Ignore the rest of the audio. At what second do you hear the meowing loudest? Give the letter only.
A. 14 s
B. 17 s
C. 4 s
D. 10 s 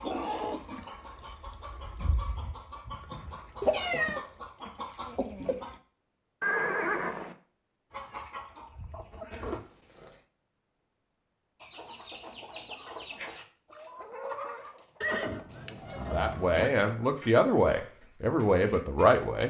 C.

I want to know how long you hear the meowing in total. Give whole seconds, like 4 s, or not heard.
3 s.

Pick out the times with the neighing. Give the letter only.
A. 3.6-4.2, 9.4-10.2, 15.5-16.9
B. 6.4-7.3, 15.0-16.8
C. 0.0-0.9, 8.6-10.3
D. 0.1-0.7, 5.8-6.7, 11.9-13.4
B.